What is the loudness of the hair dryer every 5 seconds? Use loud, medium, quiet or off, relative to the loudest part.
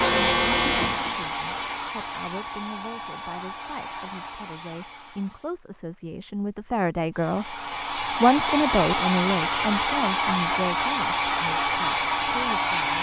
medium, loud, loud.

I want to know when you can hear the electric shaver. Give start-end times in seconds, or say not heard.
0.0-1.9.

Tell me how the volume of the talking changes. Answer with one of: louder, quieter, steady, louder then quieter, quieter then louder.
louder then quieter.